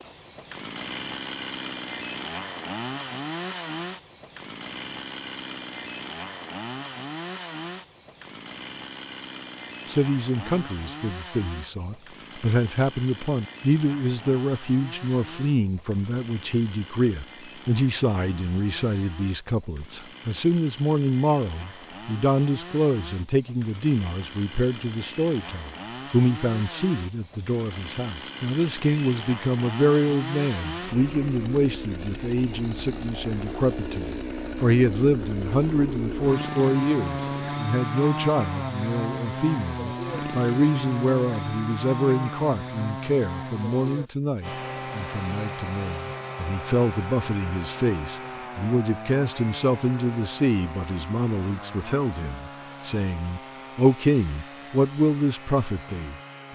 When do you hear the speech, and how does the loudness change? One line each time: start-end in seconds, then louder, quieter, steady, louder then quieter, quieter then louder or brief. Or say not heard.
9.8-56.5 steady.